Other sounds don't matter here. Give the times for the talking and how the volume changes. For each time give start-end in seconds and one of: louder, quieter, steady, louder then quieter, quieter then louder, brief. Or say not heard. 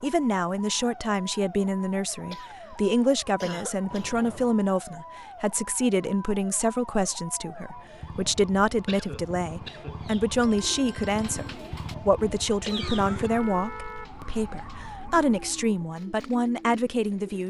0.0-17.4 steady.